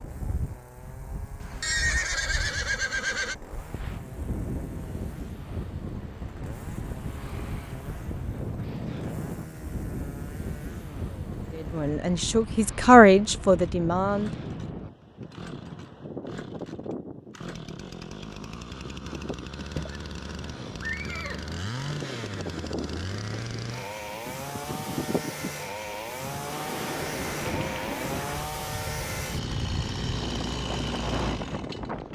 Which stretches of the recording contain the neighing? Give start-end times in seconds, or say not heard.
1.4-3.4, 19.8-21.5.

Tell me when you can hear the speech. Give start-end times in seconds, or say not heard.
11.5-14.3.